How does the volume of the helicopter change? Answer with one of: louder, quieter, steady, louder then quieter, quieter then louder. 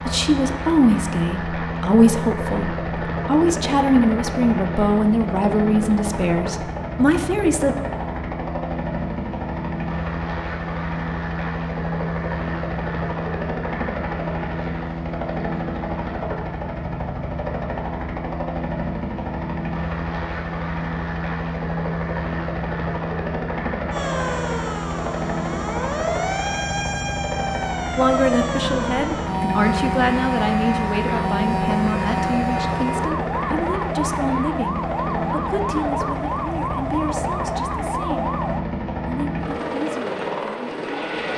steady.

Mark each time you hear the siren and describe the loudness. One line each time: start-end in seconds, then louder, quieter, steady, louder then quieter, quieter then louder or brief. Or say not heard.
23.9-38.6 steady.